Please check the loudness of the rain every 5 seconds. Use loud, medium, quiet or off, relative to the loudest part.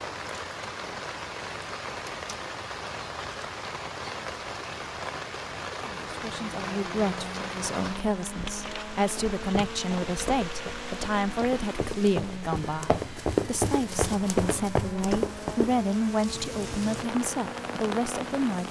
loud, loud, medium, loud.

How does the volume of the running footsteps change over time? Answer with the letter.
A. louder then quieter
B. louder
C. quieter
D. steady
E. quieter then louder
B.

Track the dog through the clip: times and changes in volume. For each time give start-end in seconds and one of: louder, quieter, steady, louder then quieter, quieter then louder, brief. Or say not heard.
not heard.